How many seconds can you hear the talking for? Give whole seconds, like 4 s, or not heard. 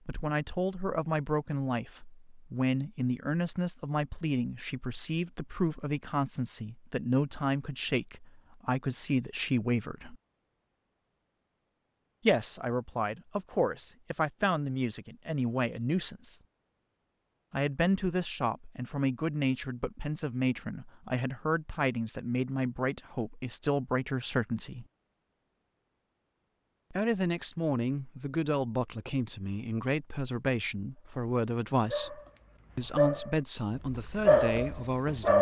30 s.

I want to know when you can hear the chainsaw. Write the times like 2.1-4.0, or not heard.
not heard.